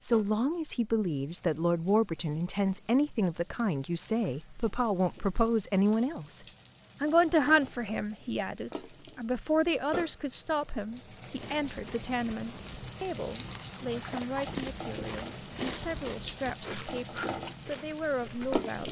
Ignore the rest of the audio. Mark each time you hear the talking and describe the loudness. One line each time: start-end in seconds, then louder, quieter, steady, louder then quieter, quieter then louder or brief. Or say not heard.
0.0-18.8 quieter.